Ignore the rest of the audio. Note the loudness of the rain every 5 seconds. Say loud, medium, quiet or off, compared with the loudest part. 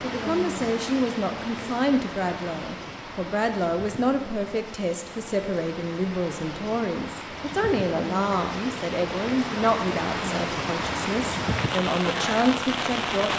medium, medium, loud.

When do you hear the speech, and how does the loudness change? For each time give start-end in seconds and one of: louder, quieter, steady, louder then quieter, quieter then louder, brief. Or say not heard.
0.0-13.3 steady.